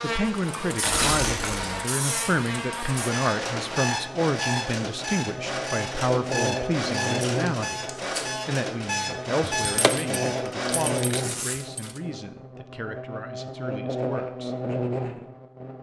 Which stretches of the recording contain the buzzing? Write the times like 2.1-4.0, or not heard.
0.0-15.7.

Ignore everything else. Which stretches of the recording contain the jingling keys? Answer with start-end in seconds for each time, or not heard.
9.6-12.0.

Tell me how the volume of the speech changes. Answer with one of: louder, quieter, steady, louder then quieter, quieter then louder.
quieter.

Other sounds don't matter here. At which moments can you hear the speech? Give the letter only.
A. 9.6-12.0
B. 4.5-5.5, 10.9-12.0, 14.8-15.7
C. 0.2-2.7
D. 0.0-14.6
D.